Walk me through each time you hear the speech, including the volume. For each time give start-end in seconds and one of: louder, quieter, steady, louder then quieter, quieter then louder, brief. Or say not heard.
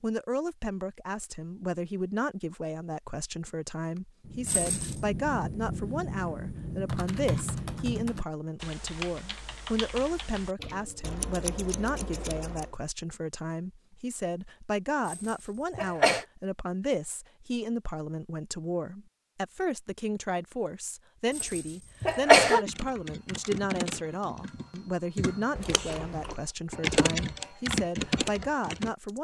0.0-29.1 steady.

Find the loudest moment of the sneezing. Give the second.
22 s.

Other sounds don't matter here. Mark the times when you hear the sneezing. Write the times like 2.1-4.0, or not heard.
4.5-5.0, 15.1-16.2, 21.4-22.6.